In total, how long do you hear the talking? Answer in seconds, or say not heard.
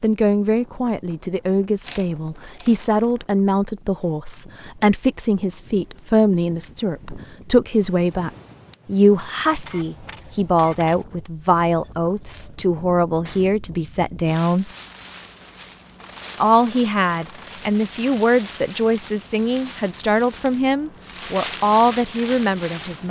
21 s.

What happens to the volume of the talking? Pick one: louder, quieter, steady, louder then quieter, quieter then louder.
steady.